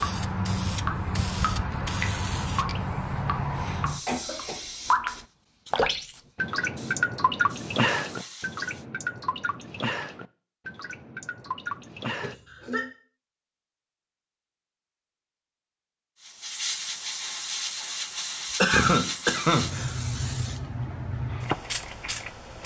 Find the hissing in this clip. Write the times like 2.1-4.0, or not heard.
0.0-8.8, 16.2-22.6.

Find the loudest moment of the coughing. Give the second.
19 s.